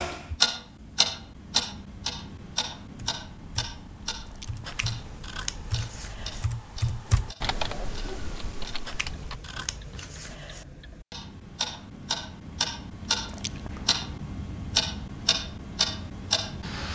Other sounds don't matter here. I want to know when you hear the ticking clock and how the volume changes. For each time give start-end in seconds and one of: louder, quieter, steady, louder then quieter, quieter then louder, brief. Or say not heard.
0.0-16.9 quieter then louder.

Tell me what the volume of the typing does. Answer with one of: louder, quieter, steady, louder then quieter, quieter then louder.
louder then quieter.